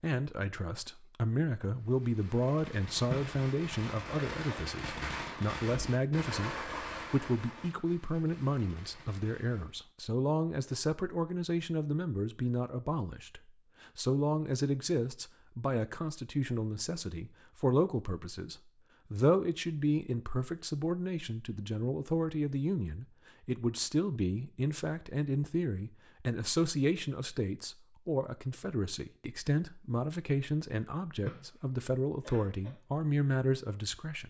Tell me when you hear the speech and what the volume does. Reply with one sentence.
The speech can be heard from 0.0 to 34.2 s, at a steady volume.